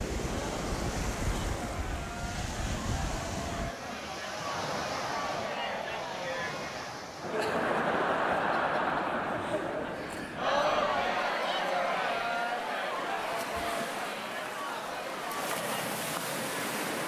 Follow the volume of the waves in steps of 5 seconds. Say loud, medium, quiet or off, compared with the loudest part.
loud, medium, medium, loud.